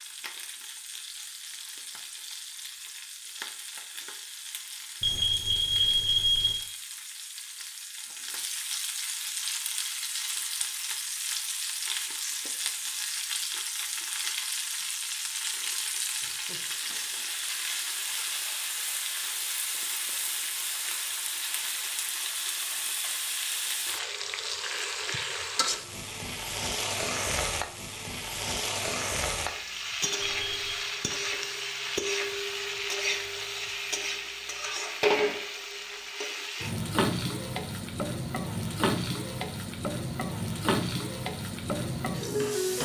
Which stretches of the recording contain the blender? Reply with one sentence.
You can't hear the blender here.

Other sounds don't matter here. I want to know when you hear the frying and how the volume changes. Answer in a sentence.
You can hear the frying from 0.0 to 42.7 s, getting louder.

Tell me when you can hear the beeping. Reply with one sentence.
The beeping can be heard from 5.0 to 6.5 s and from 30.2 to 30.9 s.